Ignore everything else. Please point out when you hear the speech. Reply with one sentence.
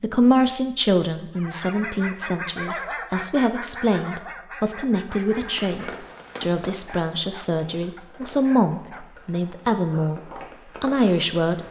The speech can be heard from 0.0 to 11.6 s.